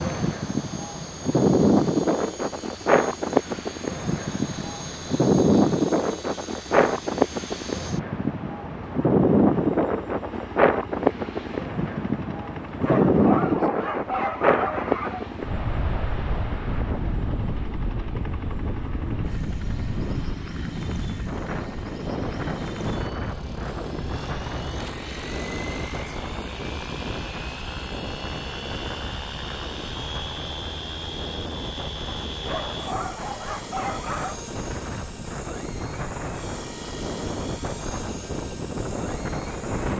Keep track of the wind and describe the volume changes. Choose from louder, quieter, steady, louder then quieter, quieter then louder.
quieter.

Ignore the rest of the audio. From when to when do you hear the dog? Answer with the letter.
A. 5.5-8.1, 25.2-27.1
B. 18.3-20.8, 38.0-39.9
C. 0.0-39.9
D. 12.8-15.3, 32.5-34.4
D.